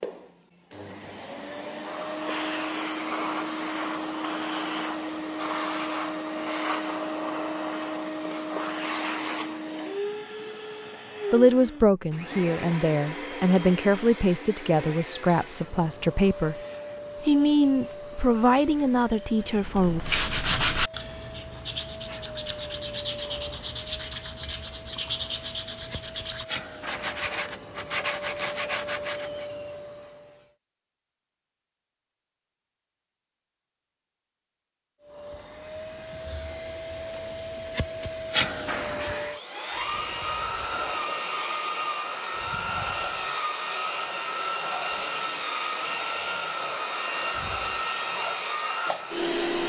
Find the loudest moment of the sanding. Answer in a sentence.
The loudest moment of the sanding is at 21 seconds.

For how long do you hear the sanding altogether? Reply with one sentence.
You can hear the sanding for 10 seconds altogether.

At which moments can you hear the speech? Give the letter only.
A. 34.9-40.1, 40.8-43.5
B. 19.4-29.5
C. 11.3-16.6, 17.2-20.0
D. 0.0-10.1
C.